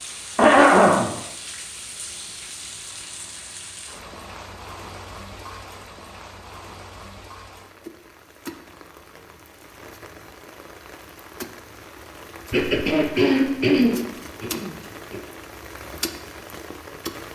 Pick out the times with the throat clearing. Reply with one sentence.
You can hear the throat clearing from 0.3 to 1.1 s and from 12.5 to 15.2 s.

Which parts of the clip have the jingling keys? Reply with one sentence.
The jingling keys can't be heard in this clip.